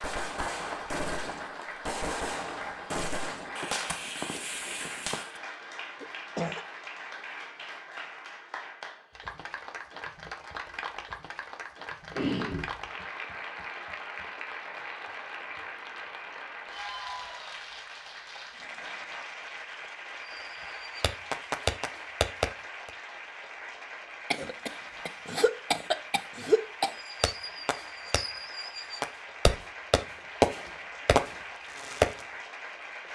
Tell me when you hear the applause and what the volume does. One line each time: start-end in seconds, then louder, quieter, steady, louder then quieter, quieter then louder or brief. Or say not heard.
0.0-33.0 steady.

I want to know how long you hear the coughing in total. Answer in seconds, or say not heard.
4 s.